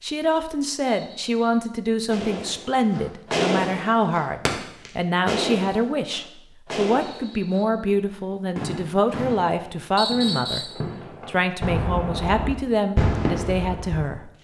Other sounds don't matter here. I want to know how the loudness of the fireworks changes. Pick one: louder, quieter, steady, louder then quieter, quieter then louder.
quieter then louder.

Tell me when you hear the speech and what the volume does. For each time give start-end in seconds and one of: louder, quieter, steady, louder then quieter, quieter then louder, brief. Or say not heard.
0.0-14.3 steady.